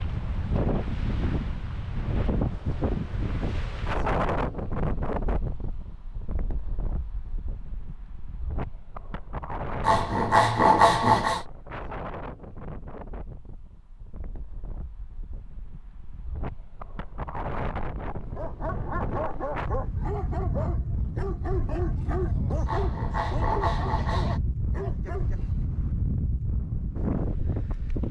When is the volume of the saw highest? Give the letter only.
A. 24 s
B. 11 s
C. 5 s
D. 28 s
B.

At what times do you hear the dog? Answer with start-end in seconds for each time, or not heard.
18.4-25.8.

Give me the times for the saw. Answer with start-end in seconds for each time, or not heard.
9.8-11.4, 22.6-24.4.